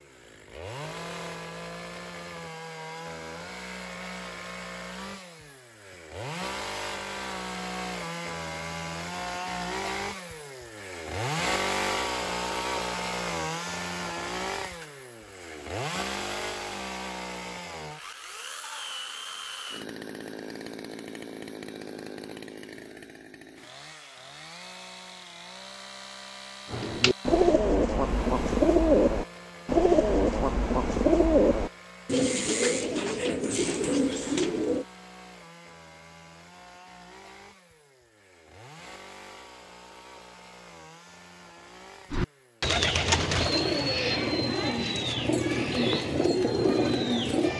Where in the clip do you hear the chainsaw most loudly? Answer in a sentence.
The loudest moment of the chainsaw is at 12 seconds.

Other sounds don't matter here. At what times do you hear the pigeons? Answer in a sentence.
You can hear the pigeons from 26.7 to 34.9 s and from 42.1 to 47.5 s.